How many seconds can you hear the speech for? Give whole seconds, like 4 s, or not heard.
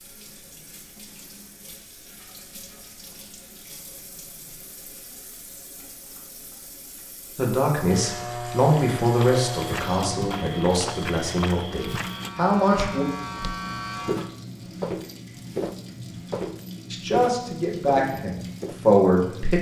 8 s.